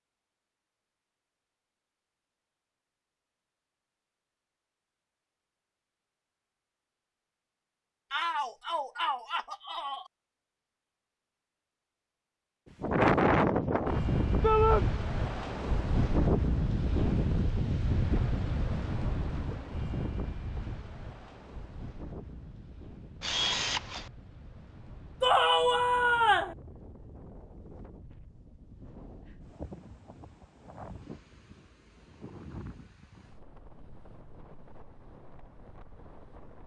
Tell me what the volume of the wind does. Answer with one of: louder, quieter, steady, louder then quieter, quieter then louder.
quieter.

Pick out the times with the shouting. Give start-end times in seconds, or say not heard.
8.1-10.1, 14.4-14.8, 25.2-26.6.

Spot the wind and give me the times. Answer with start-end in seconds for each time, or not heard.
12.8-36.6.